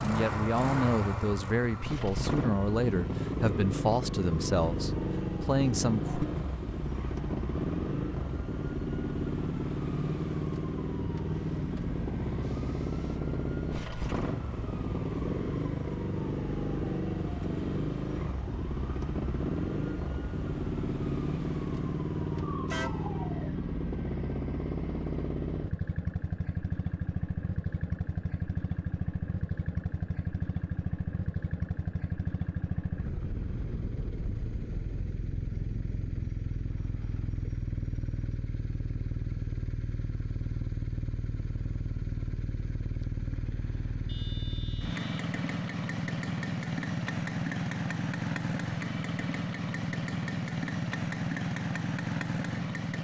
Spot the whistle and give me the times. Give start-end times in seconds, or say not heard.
not heard.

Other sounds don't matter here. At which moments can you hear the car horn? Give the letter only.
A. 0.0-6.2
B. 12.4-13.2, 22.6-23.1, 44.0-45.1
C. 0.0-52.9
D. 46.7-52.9
B.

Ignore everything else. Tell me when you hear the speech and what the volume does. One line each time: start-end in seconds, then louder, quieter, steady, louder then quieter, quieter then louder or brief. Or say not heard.
0.0-6.2 steady.